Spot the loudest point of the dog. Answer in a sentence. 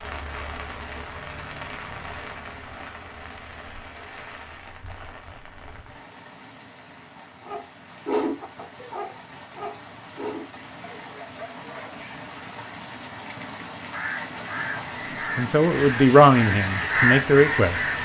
The loudest moment of the dog is at 8 seconds.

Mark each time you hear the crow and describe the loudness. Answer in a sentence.
You can hear the crow from 13.9 to 18.0 s, getting louder.